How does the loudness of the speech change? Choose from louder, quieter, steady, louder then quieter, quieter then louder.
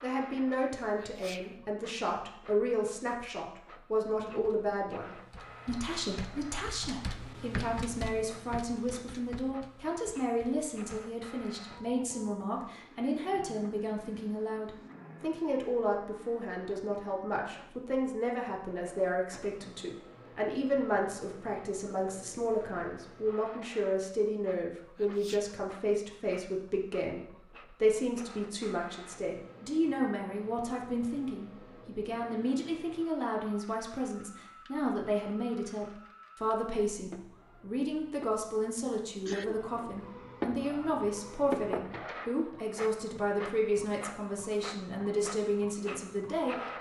steady.